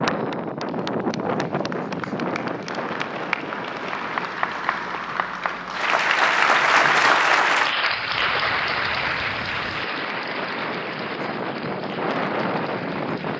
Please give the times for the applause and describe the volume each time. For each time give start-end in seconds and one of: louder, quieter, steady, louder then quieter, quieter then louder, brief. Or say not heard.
0.0-13.3 louder then quieter.